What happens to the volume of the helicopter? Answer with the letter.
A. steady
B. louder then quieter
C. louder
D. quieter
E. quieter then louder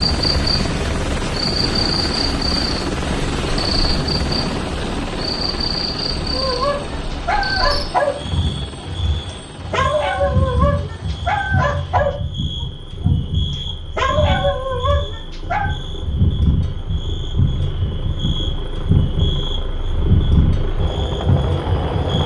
E.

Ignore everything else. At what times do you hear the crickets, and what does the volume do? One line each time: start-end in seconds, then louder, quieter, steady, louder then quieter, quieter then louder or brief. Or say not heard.
0.0-22.2 steady.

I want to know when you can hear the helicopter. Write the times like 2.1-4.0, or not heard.
0.0-22.2.